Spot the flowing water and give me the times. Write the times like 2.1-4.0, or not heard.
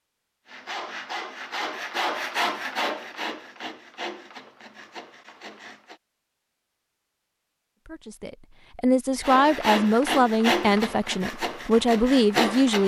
not heard.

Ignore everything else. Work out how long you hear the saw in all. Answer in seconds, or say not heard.
9 s.